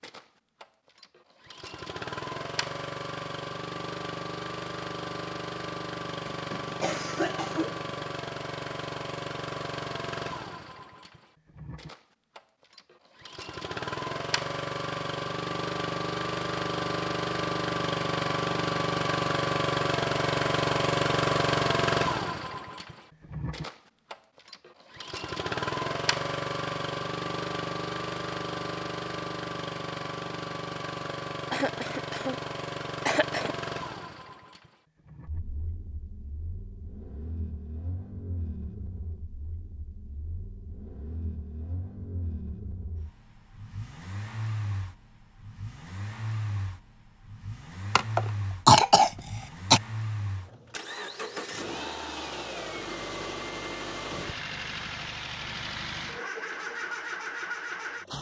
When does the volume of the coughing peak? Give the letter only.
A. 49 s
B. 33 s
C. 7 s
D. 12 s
A.